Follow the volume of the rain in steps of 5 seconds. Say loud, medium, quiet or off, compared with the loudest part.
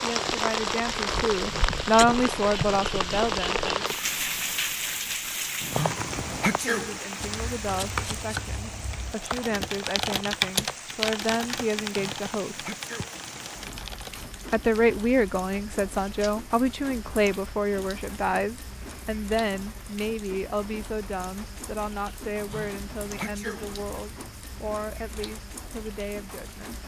loud, medium, quiet, quiet, quiet, quiet.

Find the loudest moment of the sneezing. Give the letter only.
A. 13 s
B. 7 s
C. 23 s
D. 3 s
B.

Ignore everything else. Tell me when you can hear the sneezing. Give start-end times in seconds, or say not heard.
5.6-7.0, 11.8-13.6, 22.4-24.2.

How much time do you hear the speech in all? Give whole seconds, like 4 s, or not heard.
22 s.